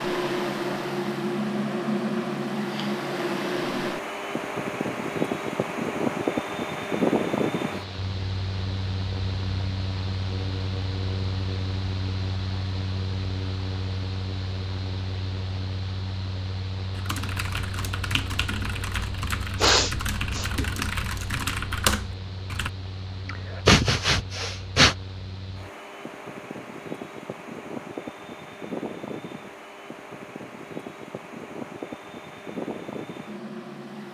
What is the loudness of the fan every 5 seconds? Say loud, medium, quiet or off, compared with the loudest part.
loud, loud, medium, medium, quiet, medium, medium.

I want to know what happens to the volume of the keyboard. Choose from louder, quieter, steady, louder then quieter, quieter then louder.
louder.